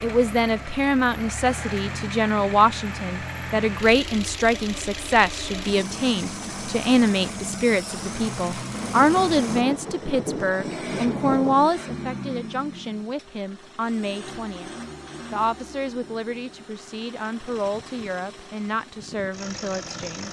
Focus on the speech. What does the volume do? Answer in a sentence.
The loudness of the speech goes down.